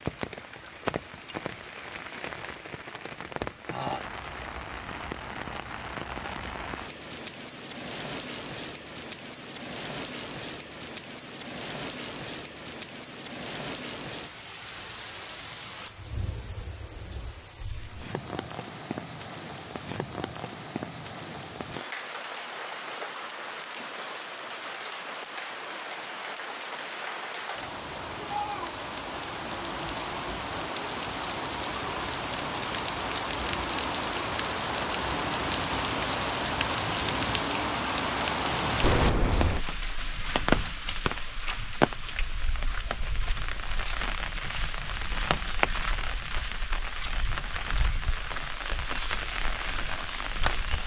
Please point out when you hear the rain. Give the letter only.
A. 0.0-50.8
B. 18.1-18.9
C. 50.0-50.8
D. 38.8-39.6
A.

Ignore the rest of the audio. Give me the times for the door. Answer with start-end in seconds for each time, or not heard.
38.8-39.6.